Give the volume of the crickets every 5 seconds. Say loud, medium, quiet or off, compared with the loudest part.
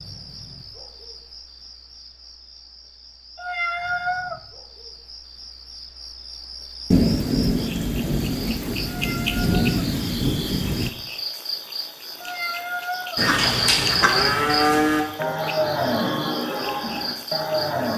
quiet, medium, loud, medium.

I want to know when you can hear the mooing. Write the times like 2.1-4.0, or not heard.
13.2-17.9.